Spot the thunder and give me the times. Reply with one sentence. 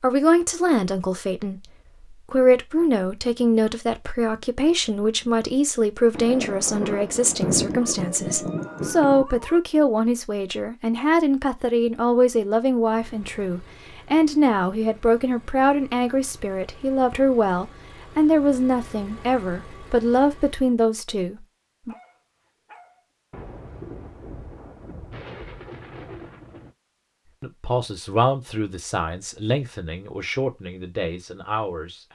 The thunder can be heard from 6.2 to 9.2 s and from 23.3 to 26.8 s.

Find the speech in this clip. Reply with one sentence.
You can hear the speech from 0.0 to 21.9 s and from 27.4 to 32.1 s.